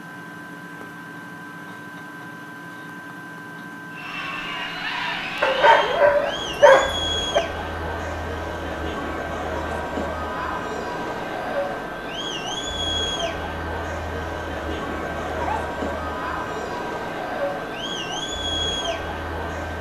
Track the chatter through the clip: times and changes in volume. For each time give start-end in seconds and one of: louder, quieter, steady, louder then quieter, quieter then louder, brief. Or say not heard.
3.9-19.7 steady.